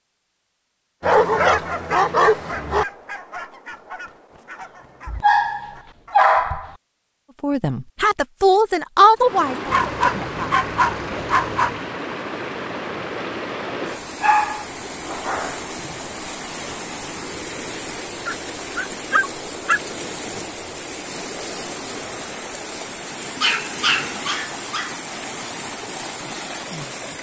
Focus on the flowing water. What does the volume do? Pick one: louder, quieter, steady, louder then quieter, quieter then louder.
steady.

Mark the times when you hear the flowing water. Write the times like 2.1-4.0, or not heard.
9.2-27.1.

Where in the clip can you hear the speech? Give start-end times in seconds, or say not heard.
7.4-10.5.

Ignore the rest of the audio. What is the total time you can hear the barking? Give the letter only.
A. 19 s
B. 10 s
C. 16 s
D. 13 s
B.